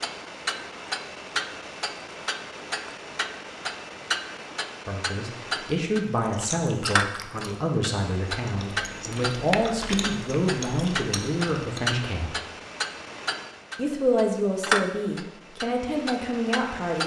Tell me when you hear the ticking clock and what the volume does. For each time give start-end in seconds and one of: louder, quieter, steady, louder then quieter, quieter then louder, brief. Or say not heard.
0.0-17.0 steady.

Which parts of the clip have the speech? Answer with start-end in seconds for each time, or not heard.
4.8-12.4, 13.8-17.0.